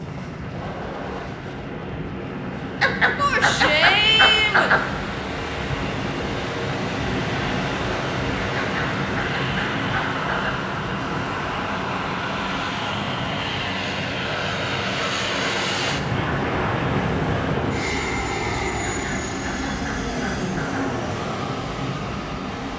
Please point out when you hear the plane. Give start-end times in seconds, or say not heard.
0.0-22.7.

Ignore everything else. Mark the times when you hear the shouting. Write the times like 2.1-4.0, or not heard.
3.1-4.7.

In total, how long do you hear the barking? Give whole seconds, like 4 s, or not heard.
6 s.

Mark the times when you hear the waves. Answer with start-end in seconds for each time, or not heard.
0.0-22.7.